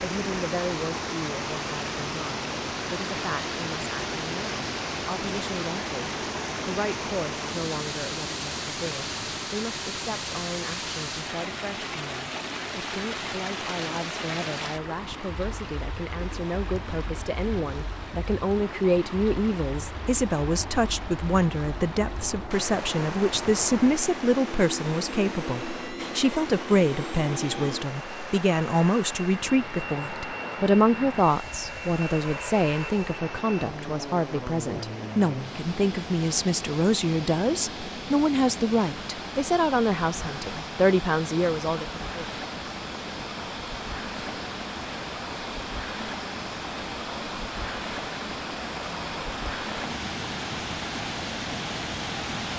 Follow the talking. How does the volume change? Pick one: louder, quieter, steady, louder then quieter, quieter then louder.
louder.